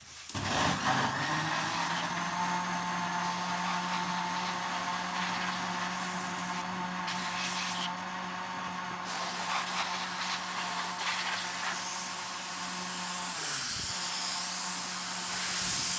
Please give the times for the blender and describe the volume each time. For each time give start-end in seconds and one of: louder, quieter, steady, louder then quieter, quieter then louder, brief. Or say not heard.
0.2-15.9 quieter.